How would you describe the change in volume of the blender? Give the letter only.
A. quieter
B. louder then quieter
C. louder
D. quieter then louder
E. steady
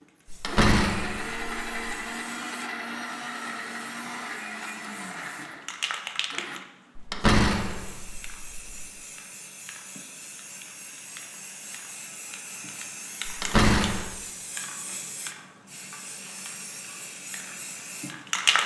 A.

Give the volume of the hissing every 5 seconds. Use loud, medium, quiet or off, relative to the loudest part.
quiet, medium, medium, loud.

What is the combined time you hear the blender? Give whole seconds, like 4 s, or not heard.
7 s.